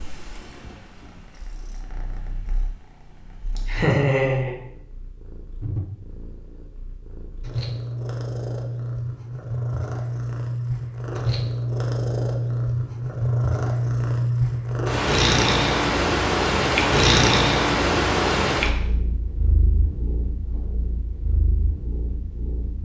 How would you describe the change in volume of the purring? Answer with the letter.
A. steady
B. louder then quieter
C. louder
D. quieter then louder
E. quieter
B.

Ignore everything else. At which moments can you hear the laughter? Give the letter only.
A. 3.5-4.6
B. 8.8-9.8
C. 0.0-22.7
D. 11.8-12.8
A.